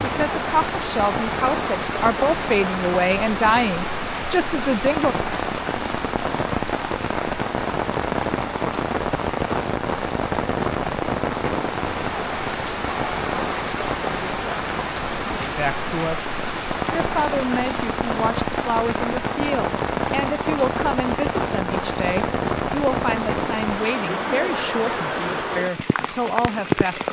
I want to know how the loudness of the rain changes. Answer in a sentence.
The loudness of the rain stays about the same.